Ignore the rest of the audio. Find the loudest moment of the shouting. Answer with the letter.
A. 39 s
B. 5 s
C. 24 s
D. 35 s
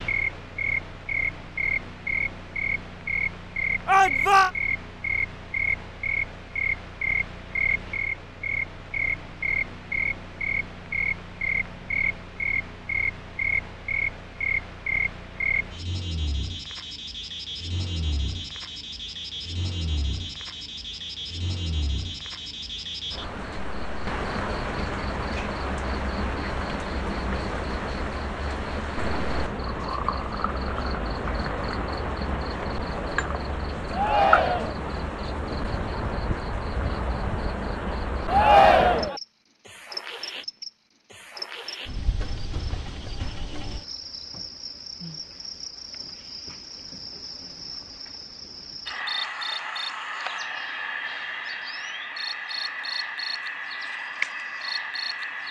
A.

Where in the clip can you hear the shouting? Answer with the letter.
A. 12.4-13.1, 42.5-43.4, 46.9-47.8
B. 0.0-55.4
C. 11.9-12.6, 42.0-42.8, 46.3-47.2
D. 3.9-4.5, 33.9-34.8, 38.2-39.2
D.